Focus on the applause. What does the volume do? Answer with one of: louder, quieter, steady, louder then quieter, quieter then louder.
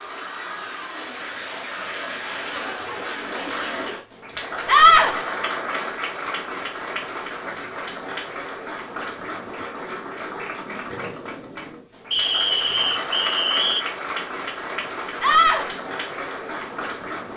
steady.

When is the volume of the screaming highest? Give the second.
5 s.